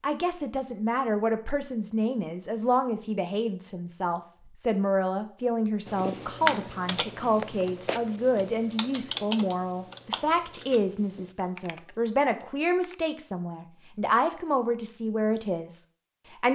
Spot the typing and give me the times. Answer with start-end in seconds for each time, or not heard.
5.8-12.9.